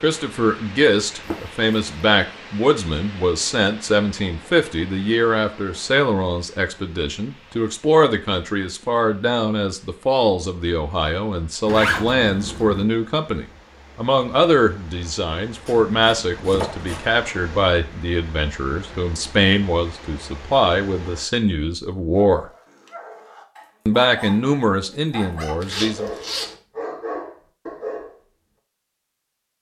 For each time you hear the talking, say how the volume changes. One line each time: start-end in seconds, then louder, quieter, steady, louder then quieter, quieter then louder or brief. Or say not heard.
0.0-22.4 steady
23.9-26.1 brief.